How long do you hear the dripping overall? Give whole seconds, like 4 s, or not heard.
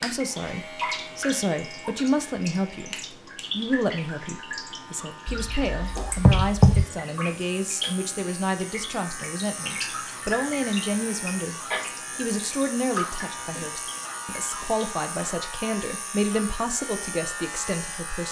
15 s.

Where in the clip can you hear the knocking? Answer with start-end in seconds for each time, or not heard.
5.2-6.8.